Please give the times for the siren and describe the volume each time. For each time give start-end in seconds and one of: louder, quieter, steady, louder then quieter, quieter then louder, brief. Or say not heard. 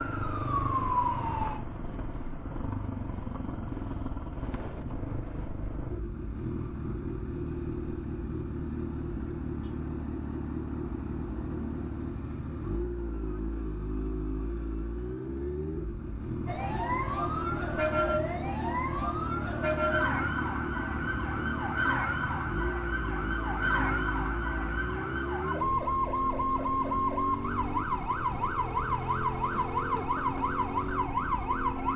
0.0-1.6 brief
16.4-31.9 steady.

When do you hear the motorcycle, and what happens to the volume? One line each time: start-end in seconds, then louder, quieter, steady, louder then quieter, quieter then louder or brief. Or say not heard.
0.0-31.9 steady.